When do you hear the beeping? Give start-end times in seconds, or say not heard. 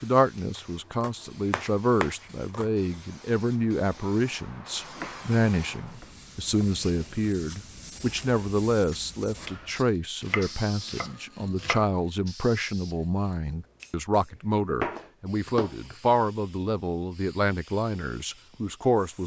not heard.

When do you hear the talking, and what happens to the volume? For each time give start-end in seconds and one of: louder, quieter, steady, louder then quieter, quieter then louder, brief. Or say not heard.
0.0-19.2 steady.